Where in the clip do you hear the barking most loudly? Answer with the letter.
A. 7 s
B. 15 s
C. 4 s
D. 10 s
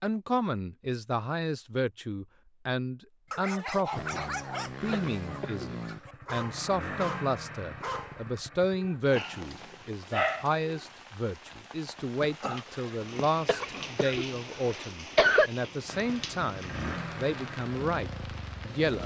D.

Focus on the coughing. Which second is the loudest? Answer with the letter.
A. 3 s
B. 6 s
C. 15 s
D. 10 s
C.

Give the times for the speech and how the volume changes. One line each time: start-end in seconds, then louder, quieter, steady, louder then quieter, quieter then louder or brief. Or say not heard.
0.0-19.0 steady.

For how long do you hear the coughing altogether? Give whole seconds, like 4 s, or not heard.
3 s.